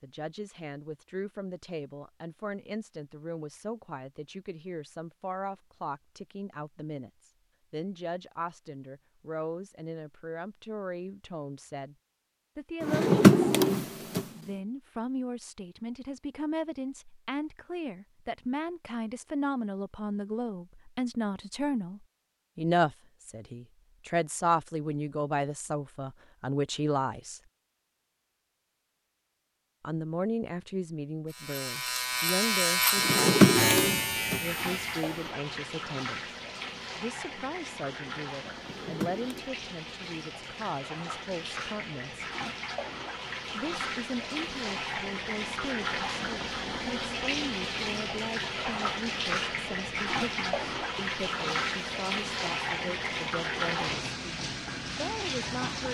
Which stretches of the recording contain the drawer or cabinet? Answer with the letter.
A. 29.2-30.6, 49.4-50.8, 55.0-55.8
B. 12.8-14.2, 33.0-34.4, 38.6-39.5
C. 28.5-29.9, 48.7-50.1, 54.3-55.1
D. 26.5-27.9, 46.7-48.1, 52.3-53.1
B.